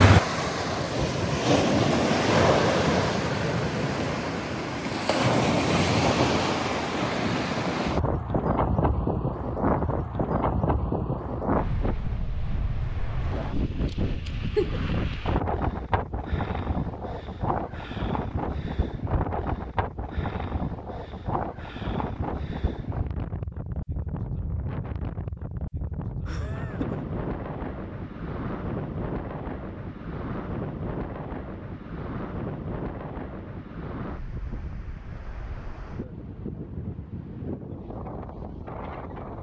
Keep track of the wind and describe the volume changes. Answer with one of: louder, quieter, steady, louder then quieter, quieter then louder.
quieter.